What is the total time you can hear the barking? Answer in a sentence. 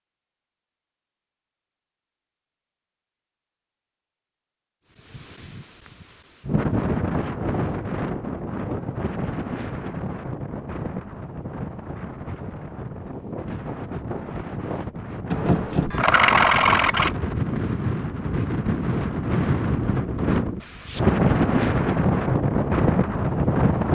The barking can't be heard in this clip.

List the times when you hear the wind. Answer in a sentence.
The wind can be heard from 5.1 to 23.8 s.